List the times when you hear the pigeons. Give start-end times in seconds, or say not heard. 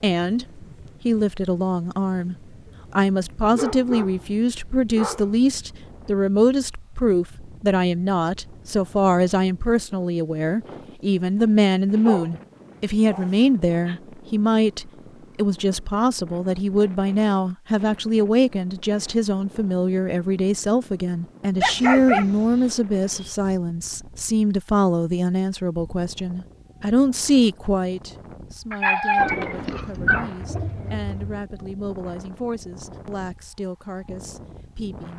29.1-31.4.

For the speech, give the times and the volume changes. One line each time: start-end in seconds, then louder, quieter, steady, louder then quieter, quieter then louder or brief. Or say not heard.
0.0-2.4 brief
3.0-35.1 quieter.